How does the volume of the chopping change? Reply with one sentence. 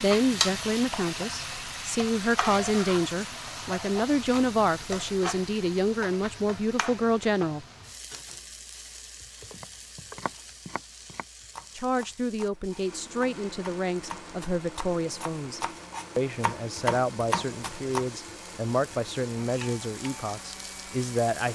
The loudness of the chopping goes up.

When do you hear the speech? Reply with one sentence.
You can hear the speech from 0.0 to 7.7 s and from 11.7 to 21.5 s.